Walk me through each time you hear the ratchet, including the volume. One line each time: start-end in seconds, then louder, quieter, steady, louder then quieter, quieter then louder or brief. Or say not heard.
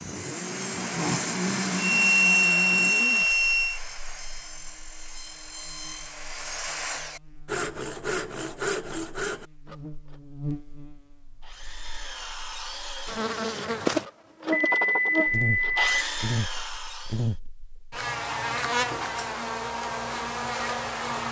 not heard.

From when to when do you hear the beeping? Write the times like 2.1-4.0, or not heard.
1.8-3.8, 14.5-16.1.